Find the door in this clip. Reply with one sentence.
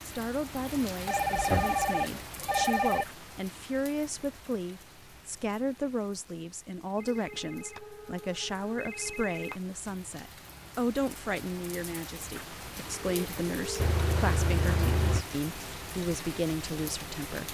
You can't hear the door here.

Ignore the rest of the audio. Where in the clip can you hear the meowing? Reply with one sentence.
You can hear the meowing from 1.4 to 2.9 s and from 13.8 to 15.2 s.